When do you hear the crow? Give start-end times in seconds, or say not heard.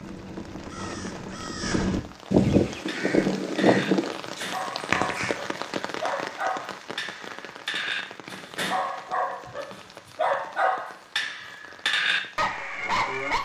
0.0-5.3.